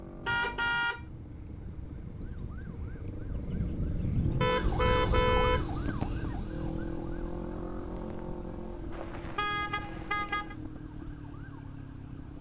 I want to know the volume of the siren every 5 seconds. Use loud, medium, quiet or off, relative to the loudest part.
loud, loud, quiet.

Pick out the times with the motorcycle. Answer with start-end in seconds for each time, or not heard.
0.0-12.3.